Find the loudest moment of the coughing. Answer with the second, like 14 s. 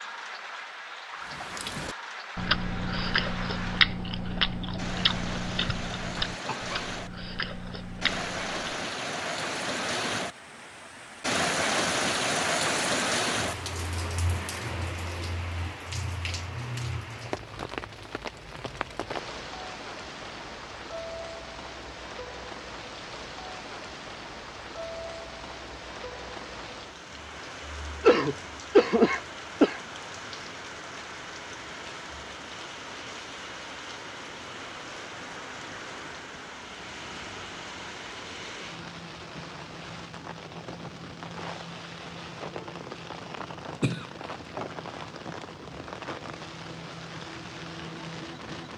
29 s.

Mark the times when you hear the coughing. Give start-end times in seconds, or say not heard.
6.0-6.8, 28.0-29.8, 43.8-44.7.